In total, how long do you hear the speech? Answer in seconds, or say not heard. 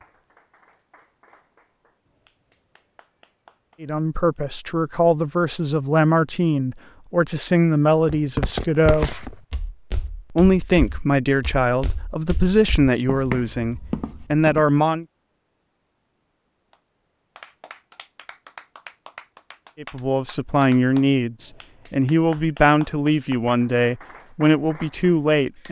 16 s.